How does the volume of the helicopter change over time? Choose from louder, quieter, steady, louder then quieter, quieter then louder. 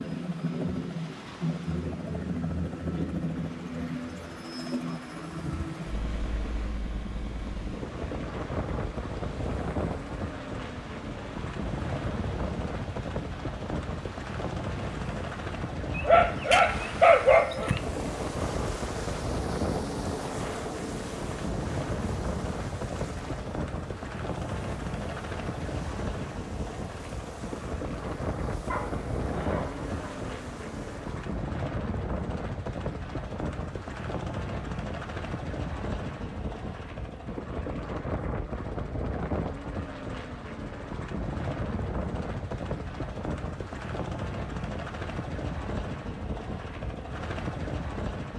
steady.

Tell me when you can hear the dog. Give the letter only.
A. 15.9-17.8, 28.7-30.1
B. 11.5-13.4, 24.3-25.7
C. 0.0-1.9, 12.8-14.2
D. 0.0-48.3
A.